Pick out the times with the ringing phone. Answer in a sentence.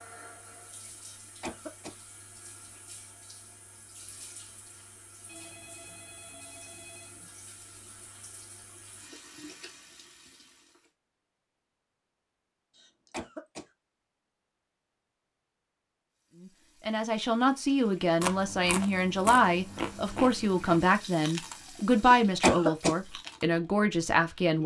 You can hear the ringing phone from 5.2 to 7.3 s.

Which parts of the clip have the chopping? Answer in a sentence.
The chopping can't be heard in this clip.